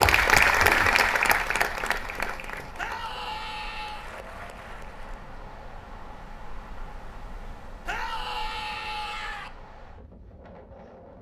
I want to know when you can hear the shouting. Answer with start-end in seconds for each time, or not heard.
2.8-4.1, 7.8-9.5.